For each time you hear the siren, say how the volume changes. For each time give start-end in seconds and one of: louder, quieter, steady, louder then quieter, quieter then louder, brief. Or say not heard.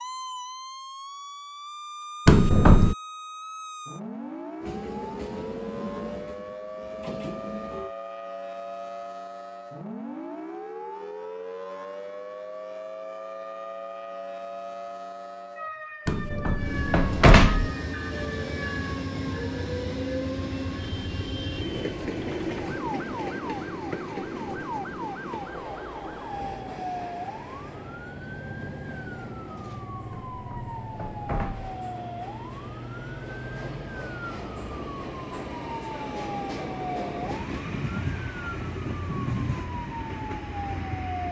0.0-41.2 steady.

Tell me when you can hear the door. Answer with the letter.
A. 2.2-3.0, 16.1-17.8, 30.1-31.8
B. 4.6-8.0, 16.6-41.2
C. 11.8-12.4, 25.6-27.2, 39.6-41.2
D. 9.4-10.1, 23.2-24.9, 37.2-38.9
A.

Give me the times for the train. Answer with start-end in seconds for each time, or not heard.
4.6-8.0, 16.6-41.2.